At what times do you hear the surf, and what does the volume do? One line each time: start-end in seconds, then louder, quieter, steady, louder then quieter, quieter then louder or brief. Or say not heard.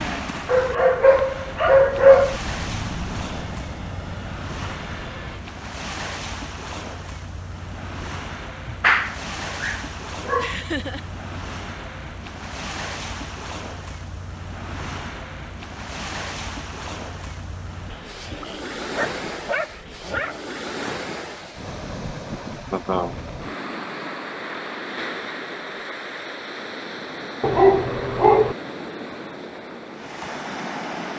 0.0-31.1 steady.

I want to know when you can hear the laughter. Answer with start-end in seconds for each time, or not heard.
10.3-11.1, 22.7-23.1.